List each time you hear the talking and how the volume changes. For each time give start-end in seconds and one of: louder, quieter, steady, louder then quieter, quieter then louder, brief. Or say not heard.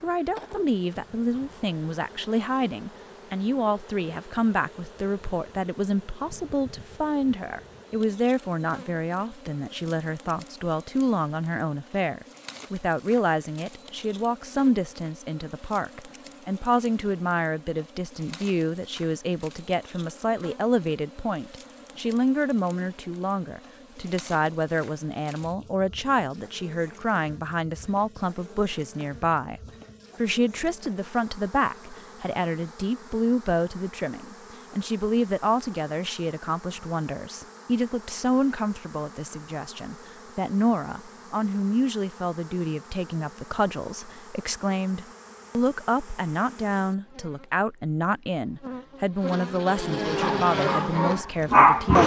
0.0-52.0 steady.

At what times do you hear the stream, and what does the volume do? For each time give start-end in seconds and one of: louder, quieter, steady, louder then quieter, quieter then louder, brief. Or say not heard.
not heard.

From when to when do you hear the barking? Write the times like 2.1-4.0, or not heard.
50.2-52.0.